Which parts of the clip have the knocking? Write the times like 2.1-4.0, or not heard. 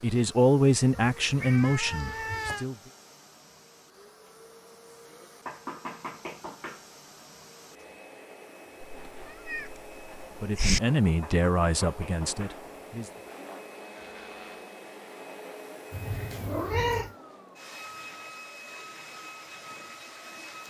5.5-6.8, 11.2-12.6.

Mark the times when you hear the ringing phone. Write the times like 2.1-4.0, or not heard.
not heard.